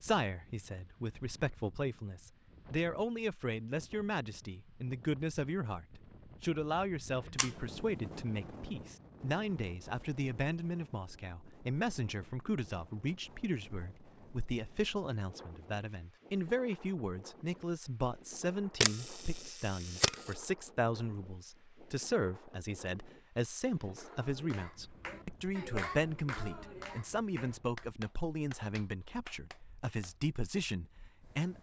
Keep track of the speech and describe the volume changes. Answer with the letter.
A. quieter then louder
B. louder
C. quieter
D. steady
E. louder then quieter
D.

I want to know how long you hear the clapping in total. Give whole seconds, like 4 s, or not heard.
6 s.